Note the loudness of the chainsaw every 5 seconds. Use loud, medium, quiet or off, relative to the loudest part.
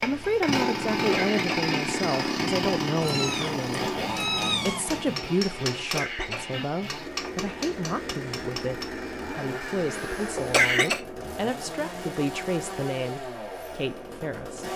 loud, medium, medium.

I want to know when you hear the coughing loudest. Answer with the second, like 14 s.
11 s.